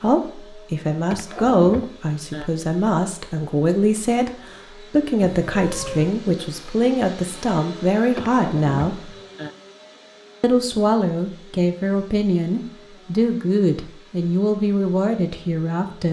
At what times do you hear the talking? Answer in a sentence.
The talking can be heard from 0.0 to 4.3 s, from 4.9 to 9.1 s and from 10.4 to 16.0 s.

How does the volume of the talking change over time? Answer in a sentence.
The loudness of the talking stays about the same.